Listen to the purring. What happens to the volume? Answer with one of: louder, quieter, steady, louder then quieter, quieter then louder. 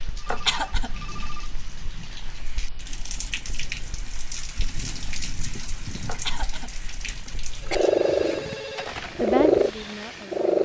louder.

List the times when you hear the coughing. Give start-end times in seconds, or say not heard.
0.2-0.9, 6.0-7.8.